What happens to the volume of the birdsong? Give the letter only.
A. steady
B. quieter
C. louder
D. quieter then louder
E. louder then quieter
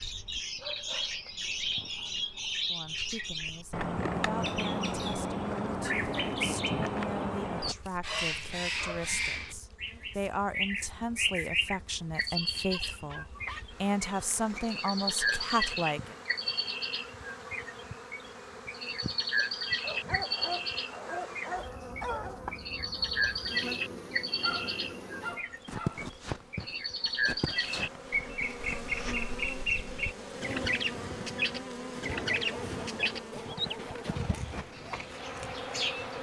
A.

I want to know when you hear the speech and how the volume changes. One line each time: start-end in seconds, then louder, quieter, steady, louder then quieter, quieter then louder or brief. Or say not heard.
2.6-16.1 louder.